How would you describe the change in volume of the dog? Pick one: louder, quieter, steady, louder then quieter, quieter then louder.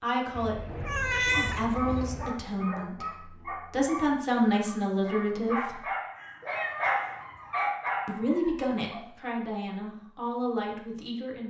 louder.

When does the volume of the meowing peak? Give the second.
1 s.